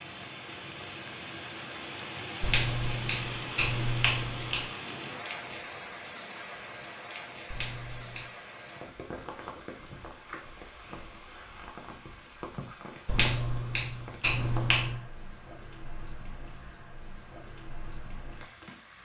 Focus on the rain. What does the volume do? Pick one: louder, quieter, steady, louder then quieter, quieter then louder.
quieter.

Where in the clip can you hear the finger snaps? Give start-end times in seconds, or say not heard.
2.4-4.7, 7.5-8.2, 13.1-14.9.